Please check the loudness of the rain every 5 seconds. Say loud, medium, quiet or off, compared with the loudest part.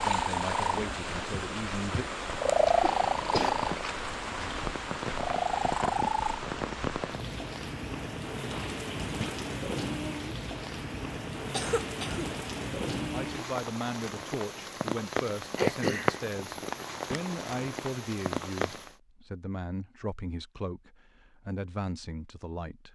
loud, loud, loud, loud, off.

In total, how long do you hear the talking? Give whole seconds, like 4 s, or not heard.
12 s.